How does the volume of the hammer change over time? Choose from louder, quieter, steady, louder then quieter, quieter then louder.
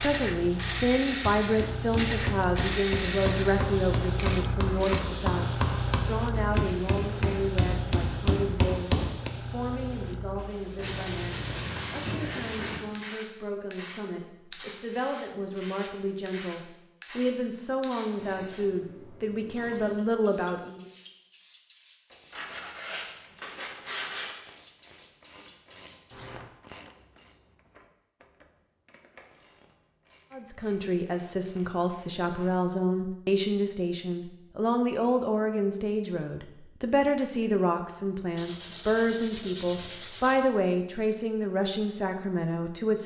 louder.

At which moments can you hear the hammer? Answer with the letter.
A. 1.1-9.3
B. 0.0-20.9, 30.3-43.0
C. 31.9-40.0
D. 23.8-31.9
A.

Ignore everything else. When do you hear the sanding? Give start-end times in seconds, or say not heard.
10.8-12.8, 22.3-24.4, 38.4-40.4.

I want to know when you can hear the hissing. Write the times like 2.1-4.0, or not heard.
0.0-26.5.